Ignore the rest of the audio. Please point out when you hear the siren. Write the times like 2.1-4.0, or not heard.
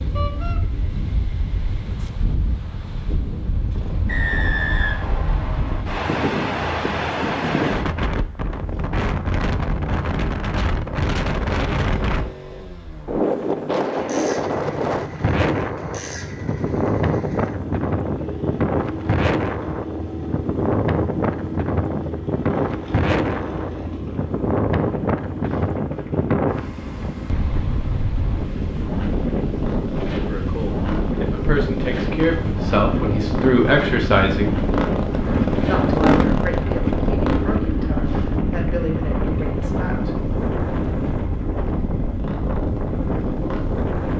not heard.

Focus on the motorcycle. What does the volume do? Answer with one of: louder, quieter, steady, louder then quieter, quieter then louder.
louder.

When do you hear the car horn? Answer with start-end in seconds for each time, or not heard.
0.1-0.6.